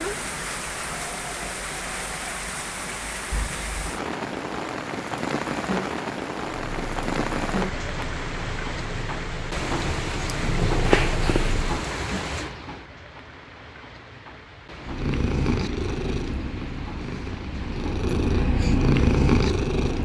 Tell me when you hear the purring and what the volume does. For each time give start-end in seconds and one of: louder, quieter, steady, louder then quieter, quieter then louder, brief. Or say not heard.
6.7-11.8 louder
14.8-20.0 quieter then louder.